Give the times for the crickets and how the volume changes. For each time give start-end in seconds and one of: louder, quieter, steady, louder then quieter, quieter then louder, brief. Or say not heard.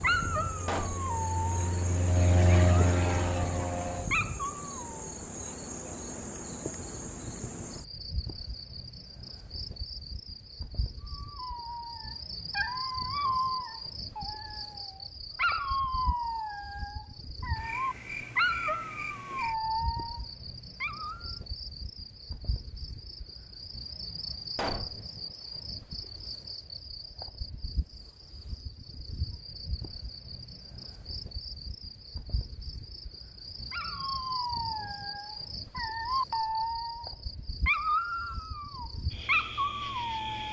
0.0-40.4 steady.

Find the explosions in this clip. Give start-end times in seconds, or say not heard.
0.7-1.1, 24.6-25.0.